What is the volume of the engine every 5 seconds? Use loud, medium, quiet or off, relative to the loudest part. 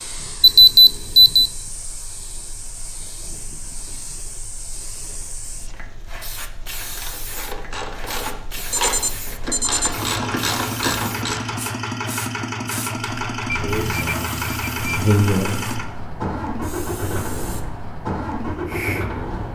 quiet, quiet, loud, loud.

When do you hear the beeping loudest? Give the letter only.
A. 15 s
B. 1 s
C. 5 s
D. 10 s
B.